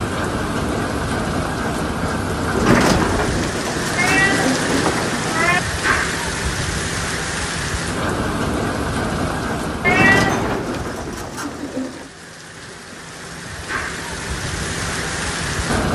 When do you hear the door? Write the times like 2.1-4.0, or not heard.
2.5-5.1, 9.8-12.1.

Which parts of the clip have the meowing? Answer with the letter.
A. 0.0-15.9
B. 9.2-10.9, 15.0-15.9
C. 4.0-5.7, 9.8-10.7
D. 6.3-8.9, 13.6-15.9
C.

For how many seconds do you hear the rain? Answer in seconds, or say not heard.
16 s.